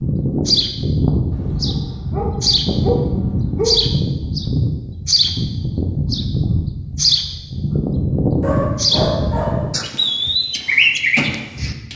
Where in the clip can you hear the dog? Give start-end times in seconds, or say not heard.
1.3-4.0, 8.4-9.8.